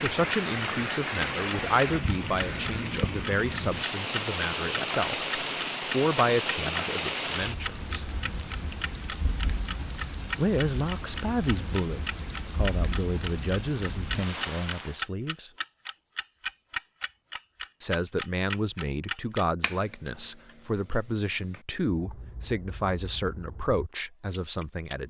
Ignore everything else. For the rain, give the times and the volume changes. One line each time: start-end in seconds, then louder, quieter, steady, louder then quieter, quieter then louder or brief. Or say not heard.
0.0-15.1 quieter.